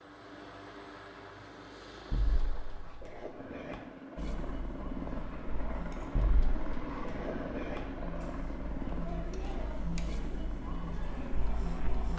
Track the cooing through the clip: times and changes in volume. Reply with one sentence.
The cooing can't be heard in this clip.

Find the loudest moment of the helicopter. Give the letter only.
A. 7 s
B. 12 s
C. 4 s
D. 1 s
A.